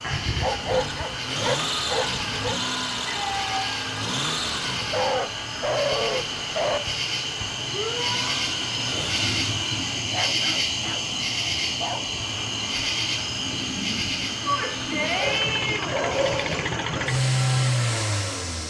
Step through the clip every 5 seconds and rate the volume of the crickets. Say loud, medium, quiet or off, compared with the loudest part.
medium, loud, loud, medium.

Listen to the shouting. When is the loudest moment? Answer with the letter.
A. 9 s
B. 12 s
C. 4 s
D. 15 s
D.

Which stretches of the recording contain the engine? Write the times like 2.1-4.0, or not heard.
0.2-10.1, 12.2-18.6.